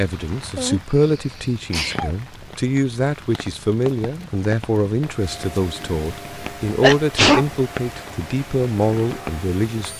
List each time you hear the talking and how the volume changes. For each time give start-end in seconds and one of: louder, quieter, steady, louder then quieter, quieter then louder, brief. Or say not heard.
0.0-9.9 steady.